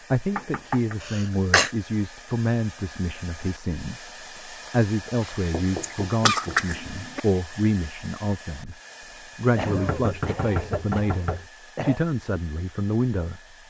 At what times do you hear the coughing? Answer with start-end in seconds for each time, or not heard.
1.0-1.7, 5.2-7.2, 9.6-12.0.